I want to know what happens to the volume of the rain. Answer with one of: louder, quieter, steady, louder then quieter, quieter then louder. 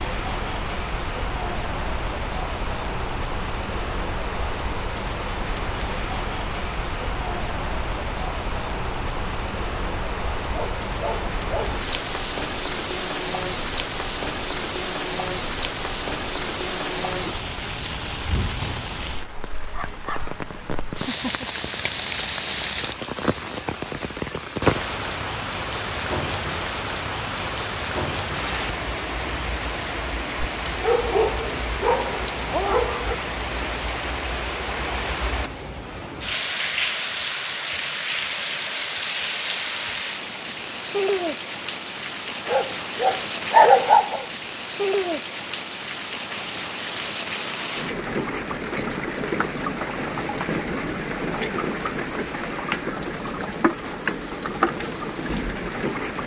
steady.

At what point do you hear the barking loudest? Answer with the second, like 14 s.
44 s.